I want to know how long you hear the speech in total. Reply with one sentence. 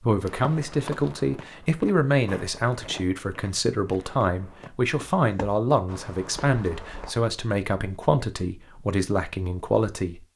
The speech can be heard for 10 seconds in total.